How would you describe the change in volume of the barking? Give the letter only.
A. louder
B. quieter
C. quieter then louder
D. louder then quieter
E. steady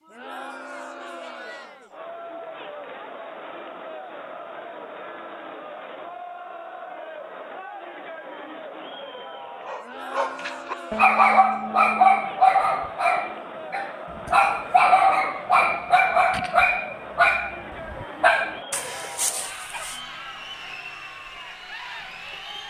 B.